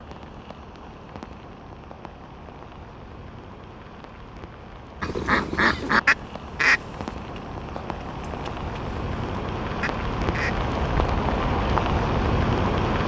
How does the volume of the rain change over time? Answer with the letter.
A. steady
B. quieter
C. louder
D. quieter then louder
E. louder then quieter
C.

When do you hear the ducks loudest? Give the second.
6 s.